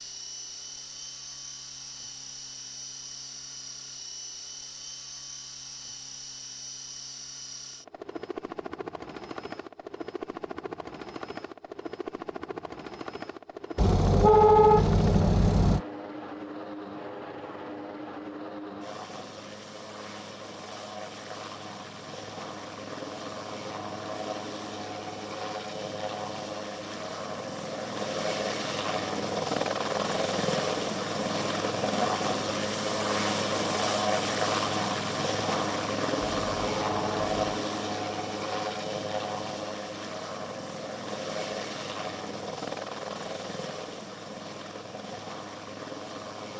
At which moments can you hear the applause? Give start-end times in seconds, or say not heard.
not heard.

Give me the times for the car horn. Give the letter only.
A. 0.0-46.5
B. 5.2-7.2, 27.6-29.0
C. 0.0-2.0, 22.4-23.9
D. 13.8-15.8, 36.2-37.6
D.